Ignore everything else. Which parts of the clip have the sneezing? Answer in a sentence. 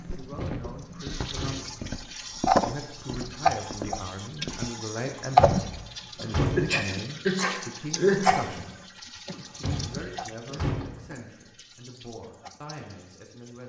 The sneezing can be heard from 6.5 to 8.4 s.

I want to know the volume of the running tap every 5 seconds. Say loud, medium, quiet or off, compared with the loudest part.
loud, loud, quiet.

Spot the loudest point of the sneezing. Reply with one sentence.
The volume of the sneezing peaks at 8 seconds.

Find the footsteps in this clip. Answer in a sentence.
You can hear the footsteps from 0.0 to 4.7 s.